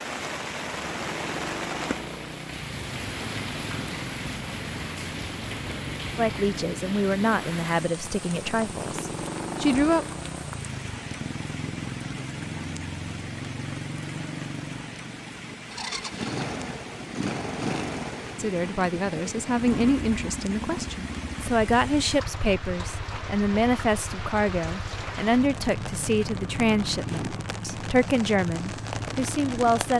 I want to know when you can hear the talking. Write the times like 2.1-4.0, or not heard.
6.2-10.1, 18.4-29.9.